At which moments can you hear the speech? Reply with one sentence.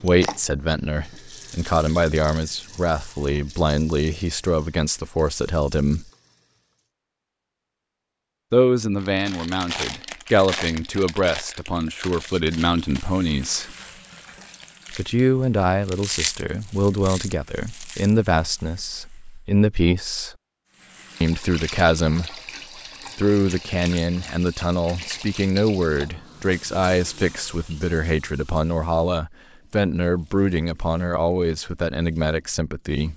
The speech can be heard from 0.0 to 6.0 s, from 8.5 to 13.8 s, from 14.9 to 20.4 s, from 21.2 to 22.4 s and from 23.1 to 33.1 s.